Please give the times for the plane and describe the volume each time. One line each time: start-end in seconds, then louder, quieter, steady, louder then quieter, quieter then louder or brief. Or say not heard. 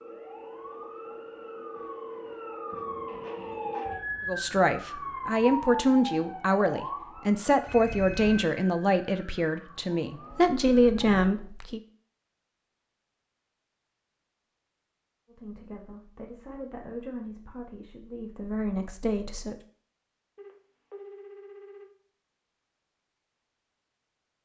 not heard.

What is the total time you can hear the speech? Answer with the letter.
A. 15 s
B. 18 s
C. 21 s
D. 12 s
D.